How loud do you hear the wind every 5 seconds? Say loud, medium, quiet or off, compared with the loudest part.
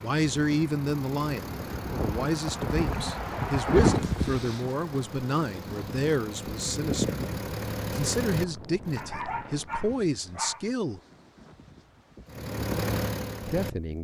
loud, medium, quiet.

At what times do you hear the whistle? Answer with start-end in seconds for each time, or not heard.
not heard.